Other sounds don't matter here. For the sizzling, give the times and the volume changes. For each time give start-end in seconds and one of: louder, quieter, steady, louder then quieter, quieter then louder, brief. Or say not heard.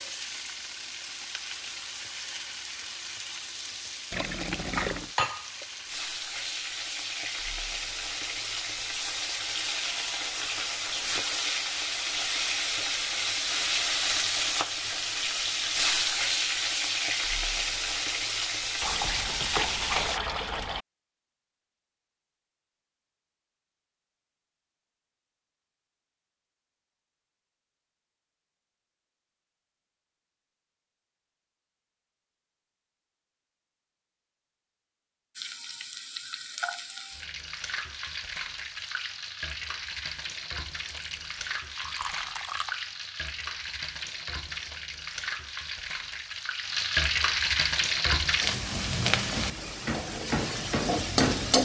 0.0-20.2 louder
35.4-51.6 louder.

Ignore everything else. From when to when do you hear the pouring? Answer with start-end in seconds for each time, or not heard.
4.1-5.1, 18.8-20.9, 40.9-42.9.